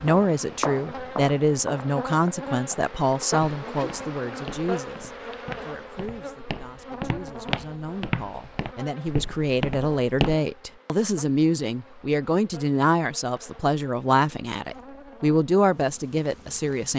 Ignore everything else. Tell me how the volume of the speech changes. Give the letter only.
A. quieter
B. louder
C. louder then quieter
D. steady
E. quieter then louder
E.